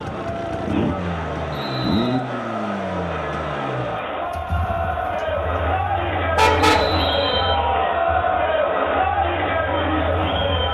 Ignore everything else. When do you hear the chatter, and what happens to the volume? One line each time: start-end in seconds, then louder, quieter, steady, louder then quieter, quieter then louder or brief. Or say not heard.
0.0-10.6 louder.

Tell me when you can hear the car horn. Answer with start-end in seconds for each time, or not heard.
6.3-7.0.